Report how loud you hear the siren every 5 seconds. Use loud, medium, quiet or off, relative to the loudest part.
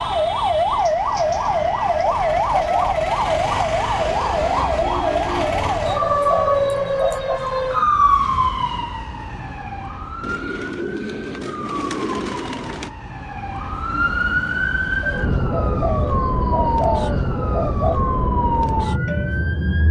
loud, loud, medium, loud.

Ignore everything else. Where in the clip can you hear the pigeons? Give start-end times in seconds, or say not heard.
0.8-3.0, 5.5-7.4, 10.2-12.9, 15.0-18.0.